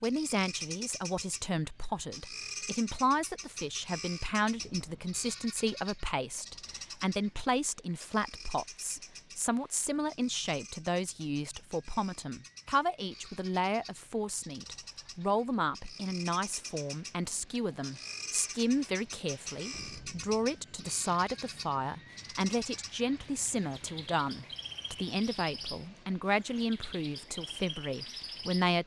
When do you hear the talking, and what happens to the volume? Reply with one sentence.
You can hear the talking from 0.0 to 28.8 s, at a steady volume.